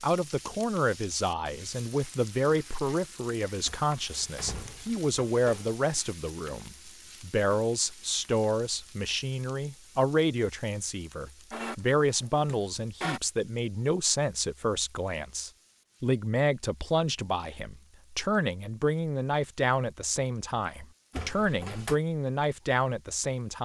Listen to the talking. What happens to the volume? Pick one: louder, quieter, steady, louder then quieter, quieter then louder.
steady.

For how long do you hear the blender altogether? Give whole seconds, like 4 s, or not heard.
2 s.